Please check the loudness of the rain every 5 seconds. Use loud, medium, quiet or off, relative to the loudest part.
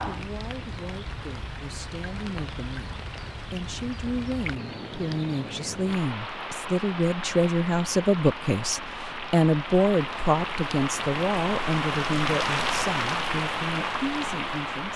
medium, medium, loud.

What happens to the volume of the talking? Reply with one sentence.
The volume of the talking goes up, then down.